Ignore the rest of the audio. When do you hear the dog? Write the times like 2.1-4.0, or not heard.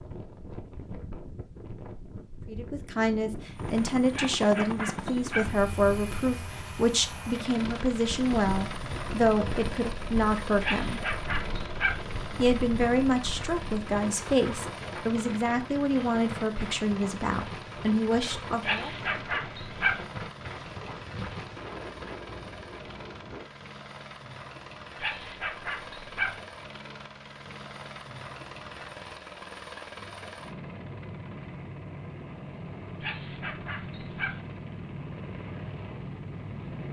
4.1-5.5, 10.6-12.1, 18.6-20.1, 25.0-26.4, 33.0-34.4.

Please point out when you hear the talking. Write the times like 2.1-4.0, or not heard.
2.5-11.0, 12.3-18.9.